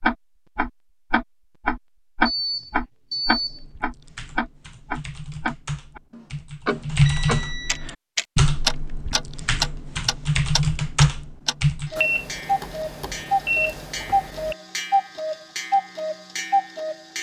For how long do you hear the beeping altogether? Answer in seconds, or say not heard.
5 s.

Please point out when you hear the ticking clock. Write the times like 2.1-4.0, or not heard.
0.0-17.1.